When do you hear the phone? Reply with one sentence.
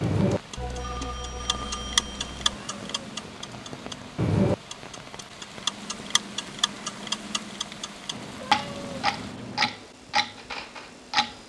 The phone can be heard from 0.6 to 2.4 s.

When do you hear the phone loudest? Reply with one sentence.
The loudest moment of the phone is at 1 second.